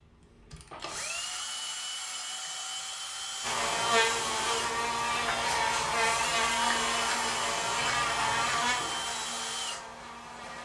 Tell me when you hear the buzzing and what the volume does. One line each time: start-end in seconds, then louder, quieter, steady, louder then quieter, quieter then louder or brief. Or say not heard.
3.4-10.6 quieter.